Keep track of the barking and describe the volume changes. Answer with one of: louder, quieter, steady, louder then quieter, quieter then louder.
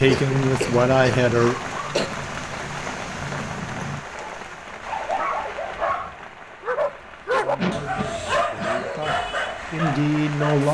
louder.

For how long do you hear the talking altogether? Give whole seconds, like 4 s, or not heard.
5 s.